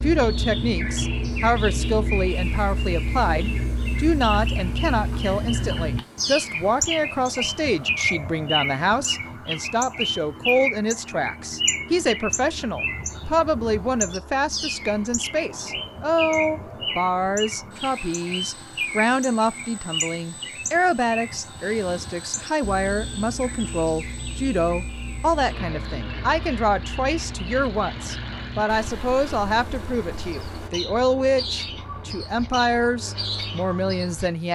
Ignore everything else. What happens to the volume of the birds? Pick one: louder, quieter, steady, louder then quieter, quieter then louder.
quieter.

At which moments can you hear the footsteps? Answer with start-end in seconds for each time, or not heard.
not heard.